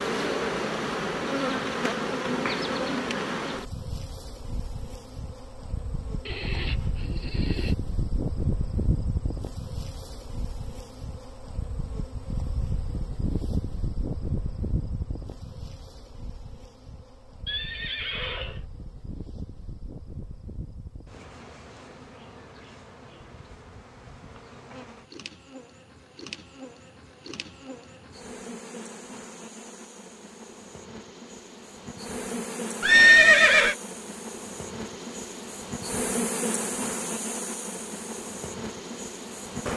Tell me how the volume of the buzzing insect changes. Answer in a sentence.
The volume of the buzzing insect goes down, then up.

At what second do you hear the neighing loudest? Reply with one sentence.
The volume of the neighing peaks at 33 seconds.